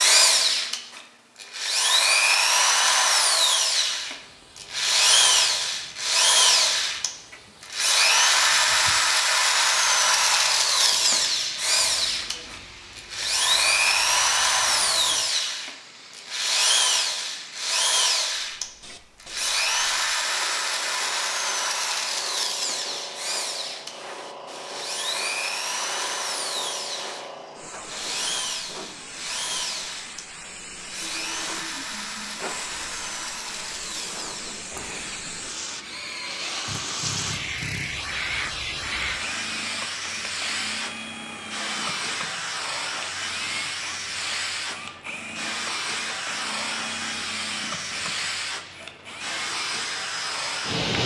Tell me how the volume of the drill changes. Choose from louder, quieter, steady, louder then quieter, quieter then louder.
quieter.